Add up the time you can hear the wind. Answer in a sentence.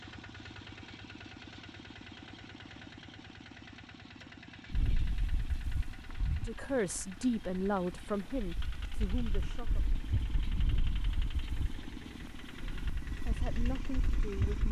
The wind can be heard for 10 seconds in total.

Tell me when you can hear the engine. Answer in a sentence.
The engine can be heard from 0.0 to 14.6 s.